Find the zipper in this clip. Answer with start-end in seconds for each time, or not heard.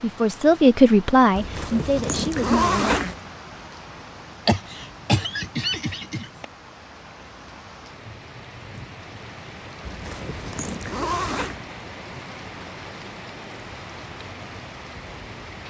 1.4-3.2, 9.8-11.6.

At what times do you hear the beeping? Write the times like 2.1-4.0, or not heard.
not heard.